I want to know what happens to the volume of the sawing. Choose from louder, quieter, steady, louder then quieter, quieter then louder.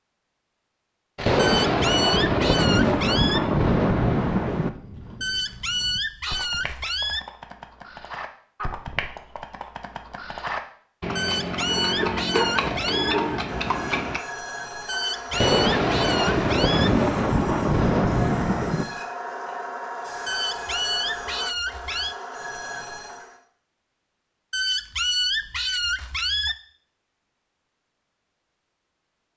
quieter.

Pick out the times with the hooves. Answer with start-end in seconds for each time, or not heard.
4.6-14.2.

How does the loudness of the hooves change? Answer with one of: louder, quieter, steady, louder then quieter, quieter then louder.
louder.